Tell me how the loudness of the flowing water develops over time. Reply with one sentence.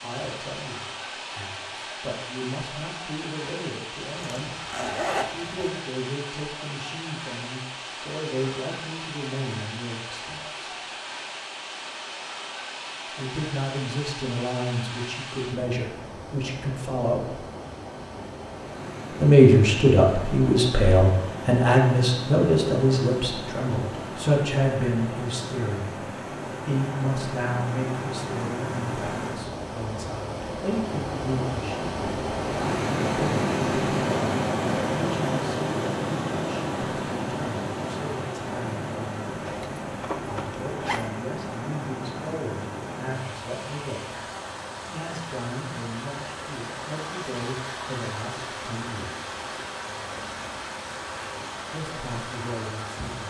The loudness of the flowing water goes up, then down.